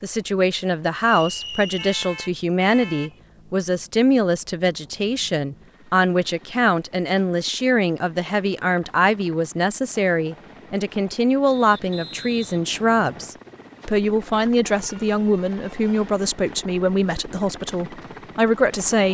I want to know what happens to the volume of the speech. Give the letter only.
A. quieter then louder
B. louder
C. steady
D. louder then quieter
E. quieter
C.